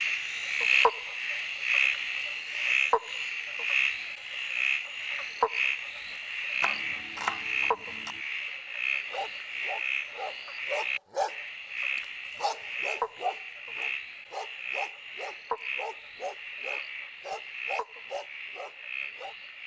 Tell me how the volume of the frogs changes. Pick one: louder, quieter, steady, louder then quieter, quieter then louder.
quieter.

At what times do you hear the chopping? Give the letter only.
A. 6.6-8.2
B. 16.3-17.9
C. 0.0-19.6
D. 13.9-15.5
A.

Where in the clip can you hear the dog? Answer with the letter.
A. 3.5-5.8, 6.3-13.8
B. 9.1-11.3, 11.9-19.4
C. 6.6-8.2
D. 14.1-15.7
B.